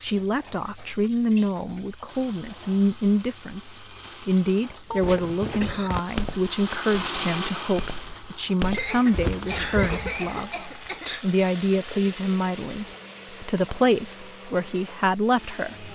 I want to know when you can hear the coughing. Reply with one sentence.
You can hear the coughing from 4.8 to 5.9 s and from 8.7 to 11.2 s.